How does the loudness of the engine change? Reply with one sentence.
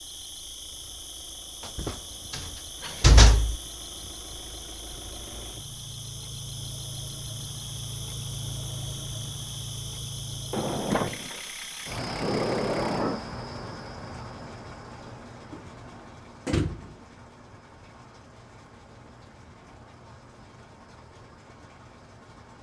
The volume of the engine goes up, then down.